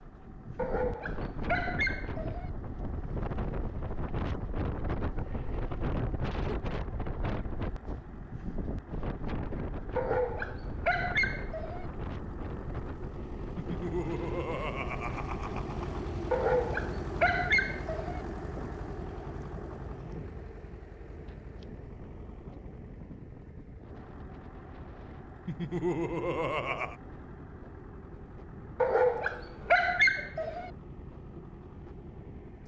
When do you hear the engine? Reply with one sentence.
You can hear the engine from 0.0 to 32.6 s.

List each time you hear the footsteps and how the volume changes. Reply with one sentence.
You can't hear the footsteps here.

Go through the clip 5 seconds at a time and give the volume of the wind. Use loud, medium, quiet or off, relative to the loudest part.
loud, loud, medium, medium, quiet, quiet, quiet.